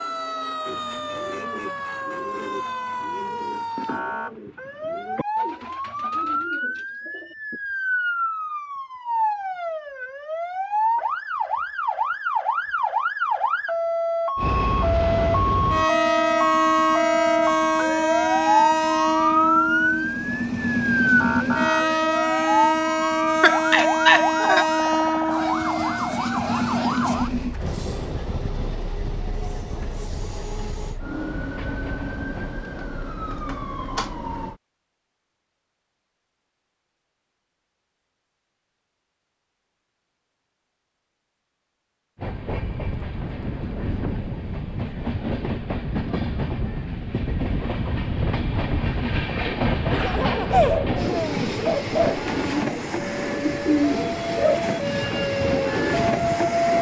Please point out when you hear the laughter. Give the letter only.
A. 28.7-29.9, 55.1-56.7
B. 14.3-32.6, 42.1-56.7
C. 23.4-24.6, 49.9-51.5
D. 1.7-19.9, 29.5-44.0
C.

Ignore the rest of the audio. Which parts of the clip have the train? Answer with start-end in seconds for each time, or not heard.
14.3-32.6, 42.1-56.7.